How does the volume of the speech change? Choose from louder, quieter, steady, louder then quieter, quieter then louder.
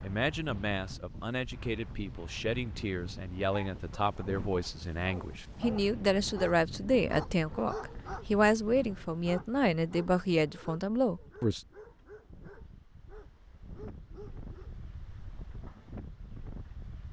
louder.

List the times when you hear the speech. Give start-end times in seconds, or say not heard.
0.0-11.6.